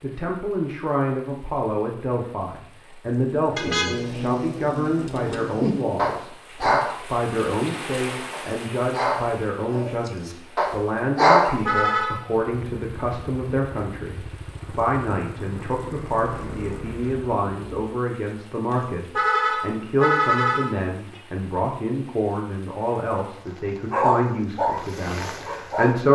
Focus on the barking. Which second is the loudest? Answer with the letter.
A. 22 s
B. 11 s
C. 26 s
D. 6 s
B.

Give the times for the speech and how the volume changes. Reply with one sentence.
You can hear the speech from 0.0 to 26.1 s, at a steady volume.